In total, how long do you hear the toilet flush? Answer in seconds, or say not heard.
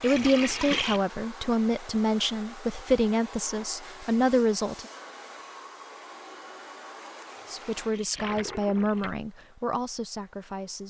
3 s.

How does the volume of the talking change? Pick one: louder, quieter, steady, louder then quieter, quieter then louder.
quieter.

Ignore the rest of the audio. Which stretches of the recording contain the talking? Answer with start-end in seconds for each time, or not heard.
0.0-4.8, 7.5-10.8.